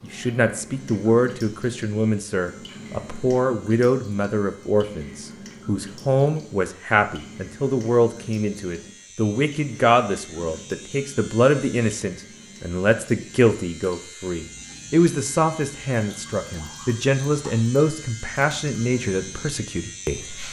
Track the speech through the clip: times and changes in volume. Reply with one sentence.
You can hear the speech from 0.0 to 20.4 s, at a steady volume.